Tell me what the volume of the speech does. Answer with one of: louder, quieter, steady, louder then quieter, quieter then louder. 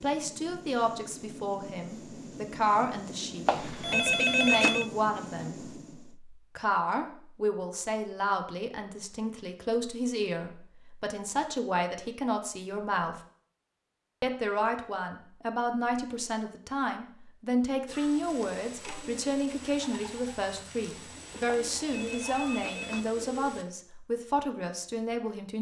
steady.